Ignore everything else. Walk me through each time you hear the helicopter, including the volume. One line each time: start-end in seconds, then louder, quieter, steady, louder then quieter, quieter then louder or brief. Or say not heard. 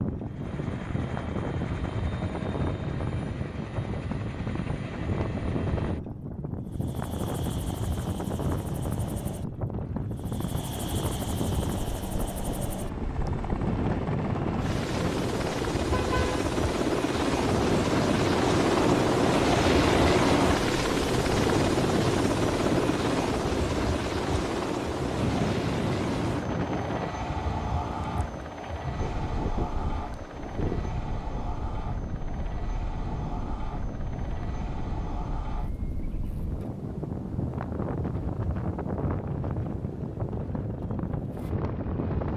0.0-42.3 louder then quieter.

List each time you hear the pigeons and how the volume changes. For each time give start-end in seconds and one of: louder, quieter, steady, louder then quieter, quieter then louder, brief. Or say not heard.
not heard.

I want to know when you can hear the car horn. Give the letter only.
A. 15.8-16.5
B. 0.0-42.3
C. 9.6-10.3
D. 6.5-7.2
A.